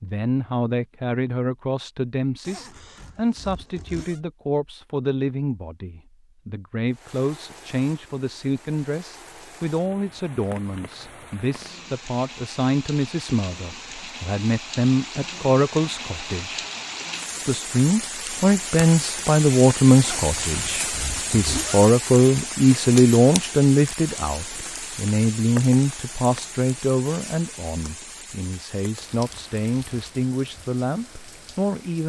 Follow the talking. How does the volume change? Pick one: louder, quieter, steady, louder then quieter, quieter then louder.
louder then quieter.